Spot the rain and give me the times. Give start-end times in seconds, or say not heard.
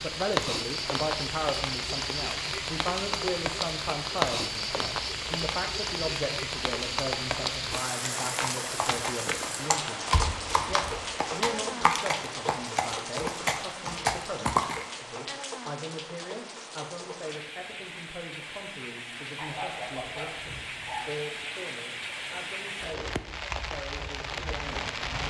0.0-25.2.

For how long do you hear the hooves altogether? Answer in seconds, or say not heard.
7 s.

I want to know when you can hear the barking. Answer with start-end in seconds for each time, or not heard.
19.4-21.1.